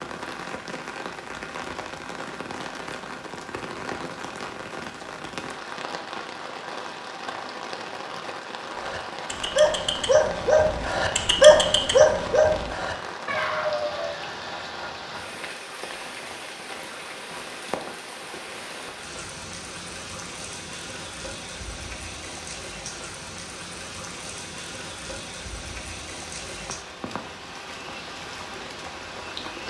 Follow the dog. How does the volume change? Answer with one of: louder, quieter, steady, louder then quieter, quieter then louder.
louder then quieter.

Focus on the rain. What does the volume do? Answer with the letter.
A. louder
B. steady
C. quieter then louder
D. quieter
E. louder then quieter
B.